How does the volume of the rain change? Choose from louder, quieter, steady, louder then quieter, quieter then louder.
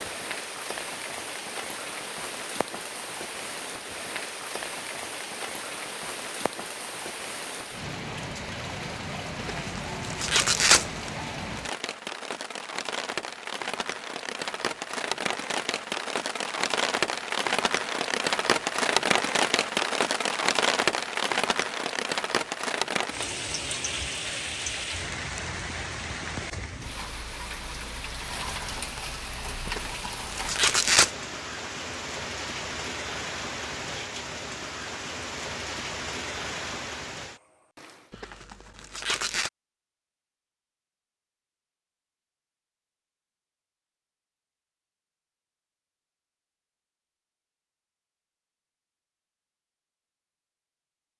louder then quieter.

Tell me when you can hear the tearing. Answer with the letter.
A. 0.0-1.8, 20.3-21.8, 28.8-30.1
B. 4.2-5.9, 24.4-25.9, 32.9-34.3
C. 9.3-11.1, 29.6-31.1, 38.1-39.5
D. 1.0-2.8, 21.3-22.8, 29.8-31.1
C.